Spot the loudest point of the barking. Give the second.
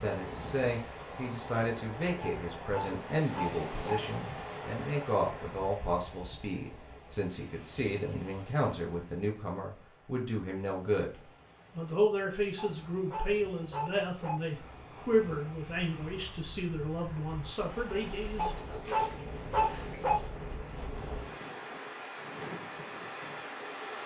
20 s.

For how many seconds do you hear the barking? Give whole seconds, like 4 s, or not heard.
5 s.